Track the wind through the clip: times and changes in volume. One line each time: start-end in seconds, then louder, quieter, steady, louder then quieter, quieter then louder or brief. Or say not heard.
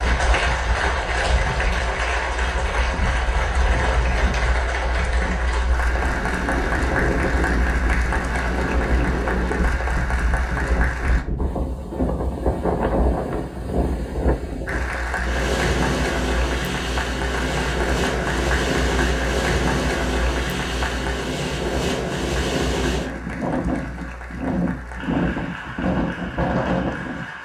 0.0-27.4 louder.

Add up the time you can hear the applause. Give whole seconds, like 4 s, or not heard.
24 s.